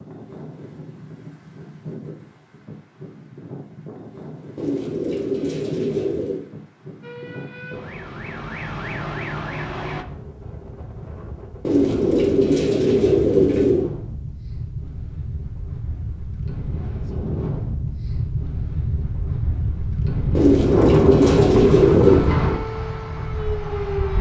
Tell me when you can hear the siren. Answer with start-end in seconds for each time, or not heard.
7.0-10.1, 22.1-24.1.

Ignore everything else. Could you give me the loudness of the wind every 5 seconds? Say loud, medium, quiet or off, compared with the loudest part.
quiet, quiet, quiet, medium, loud.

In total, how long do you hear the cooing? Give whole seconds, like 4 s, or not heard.
6 s.